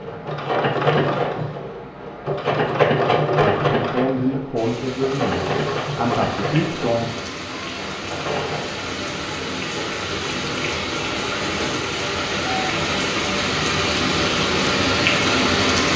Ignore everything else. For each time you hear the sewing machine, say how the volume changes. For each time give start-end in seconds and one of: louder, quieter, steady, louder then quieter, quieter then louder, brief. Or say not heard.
0.0-8.7 quieter.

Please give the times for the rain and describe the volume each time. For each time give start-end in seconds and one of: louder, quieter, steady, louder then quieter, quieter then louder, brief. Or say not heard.
4.5-15.9 louder.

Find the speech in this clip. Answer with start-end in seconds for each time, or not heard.
3.3-7.1.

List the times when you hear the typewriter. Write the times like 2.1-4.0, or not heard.
not heard.